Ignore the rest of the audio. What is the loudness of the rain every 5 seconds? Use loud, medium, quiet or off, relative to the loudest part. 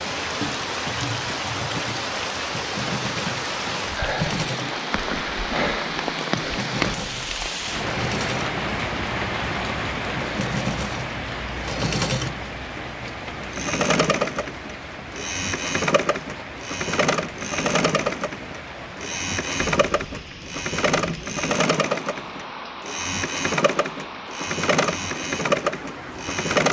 loud, loud, medium, medium, medium, medium.